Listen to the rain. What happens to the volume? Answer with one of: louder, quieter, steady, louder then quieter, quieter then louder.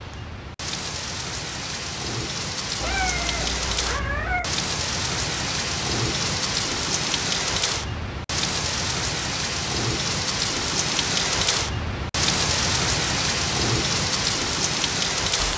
louder.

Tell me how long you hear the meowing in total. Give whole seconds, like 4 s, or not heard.
2 s.